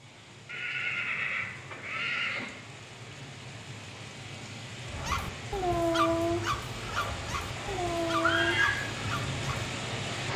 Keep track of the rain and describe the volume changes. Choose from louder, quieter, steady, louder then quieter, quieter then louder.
louder.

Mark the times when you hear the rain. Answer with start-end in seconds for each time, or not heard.
0.0-10.3.